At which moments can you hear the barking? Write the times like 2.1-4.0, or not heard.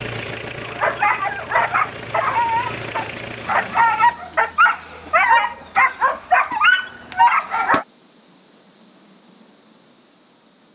0.6-7.8.